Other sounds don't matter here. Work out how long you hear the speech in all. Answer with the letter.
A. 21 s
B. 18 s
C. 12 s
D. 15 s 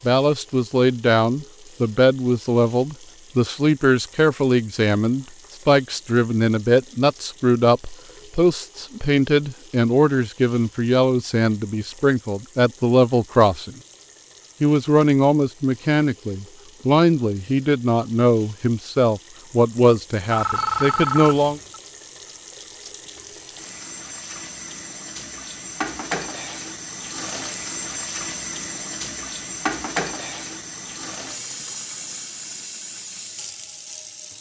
A.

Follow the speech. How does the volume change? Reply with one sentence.
The volume of the speech stays about the same.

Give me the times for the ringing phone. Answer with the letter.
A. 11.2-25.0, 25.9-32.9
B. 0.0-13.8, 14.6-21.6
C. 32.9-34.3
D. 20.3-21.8
D.